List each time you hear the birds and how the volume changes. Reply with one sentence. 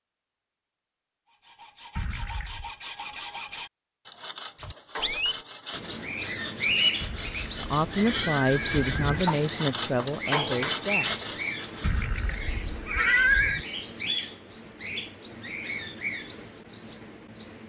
You can hear the birds from 4.6 to 17.6 s, getting quieter.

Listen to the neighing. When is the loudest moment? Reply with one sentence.
The loudest moment of the neighing is at 13 seconds.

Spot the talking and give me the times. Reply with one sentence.
The talking can be heard from 7.5 to 11.2 s.